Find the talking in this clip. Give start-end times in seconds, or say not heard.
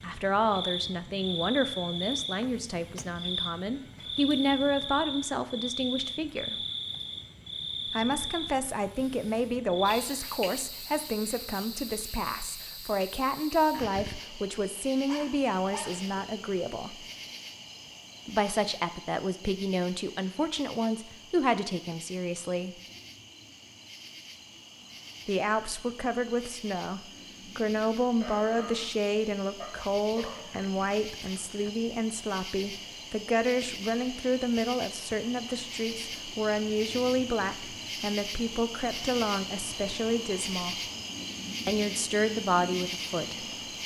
0.0-6.5, 7.9-17.1, 18.2-22.8, 25.2-40.8, 41.6-43.5.